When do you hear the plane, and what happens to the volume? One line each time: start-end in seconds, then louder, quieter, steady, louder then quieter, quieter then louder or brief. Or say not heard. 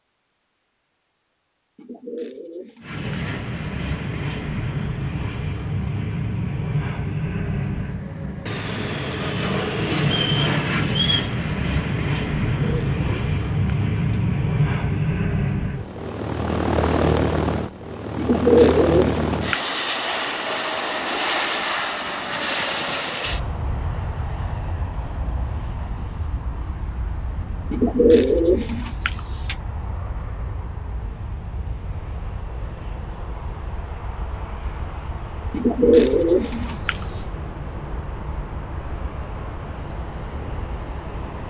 2.8-41.4 quieter.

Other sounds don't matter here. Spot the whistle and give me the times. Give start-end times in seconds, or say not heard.
10.1-11.3.